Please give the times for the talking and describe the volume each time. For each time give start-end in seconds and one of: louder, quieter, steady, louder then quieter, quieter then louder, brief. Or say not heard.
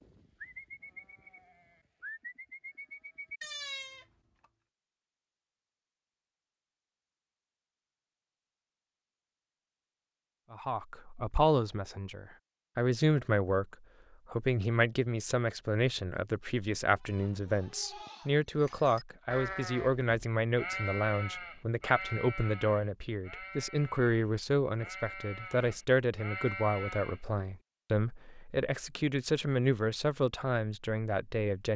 10.5-31.7 steady.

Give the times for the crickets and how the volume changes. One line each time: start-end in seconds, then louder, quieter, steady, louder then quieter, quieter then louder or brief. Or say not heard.
not heard.